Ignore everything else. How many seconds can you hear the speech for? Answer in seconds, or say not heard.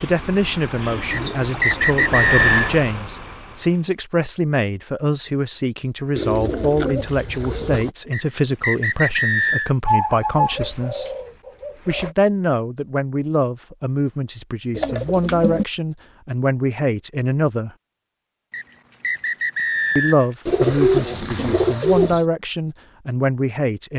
21 s.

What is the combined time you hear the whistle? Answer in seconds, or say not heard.
5 s.